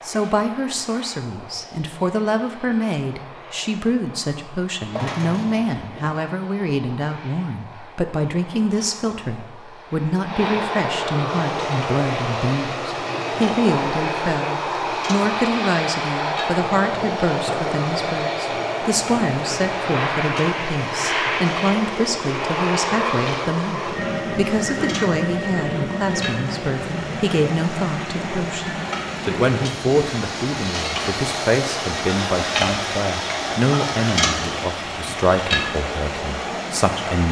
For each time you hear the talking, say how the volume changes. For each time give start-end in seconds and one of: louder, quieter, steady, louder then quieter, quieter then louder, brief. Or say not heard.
0.1-37.2 steady.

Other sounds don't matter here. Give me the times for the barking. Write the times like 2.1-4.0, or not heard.
not heard.